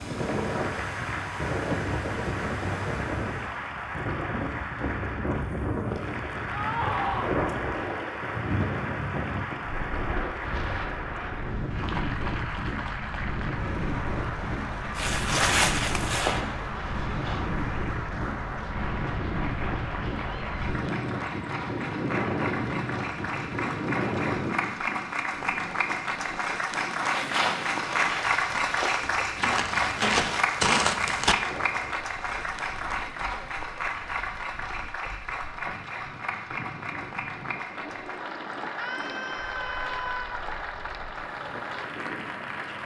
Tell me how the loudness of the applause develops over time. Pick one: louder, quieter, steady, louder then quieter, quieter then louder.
louder then quieter.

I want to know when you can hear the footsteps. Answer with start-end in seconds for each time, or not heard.
14.9-17.4, 27.0-31.4.